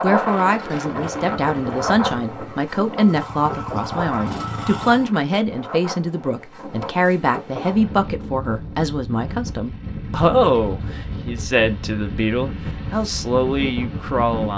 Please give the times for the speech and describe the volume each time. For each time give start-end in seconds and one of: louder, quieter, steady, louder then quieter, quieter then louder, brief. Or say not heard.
0.0-14.5 steady.